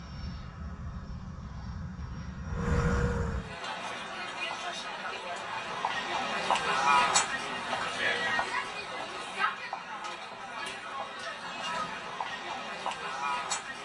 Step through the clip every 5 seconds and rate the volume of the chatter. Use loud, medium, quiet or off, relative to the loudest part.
medium, loud, medium.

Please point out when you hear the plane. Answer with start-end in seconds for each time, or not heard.
0.0-3.5.